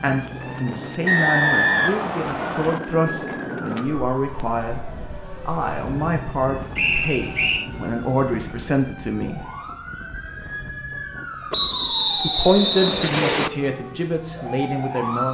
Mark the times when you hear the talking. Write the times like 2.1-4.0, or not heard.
0.0-4.8, 5.5-9.4, 12.2-15.2.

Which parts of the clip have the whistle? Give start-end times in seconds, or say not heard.
1.1-2.8, 6.8-7.7, 11.5-13.5.